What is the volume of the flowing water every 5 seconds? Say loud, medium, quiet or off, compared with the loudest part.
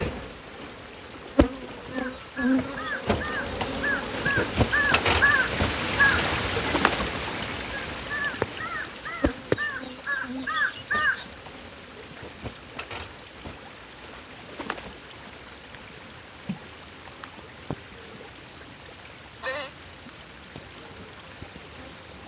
medium, loud, quiet, quiet, quiet.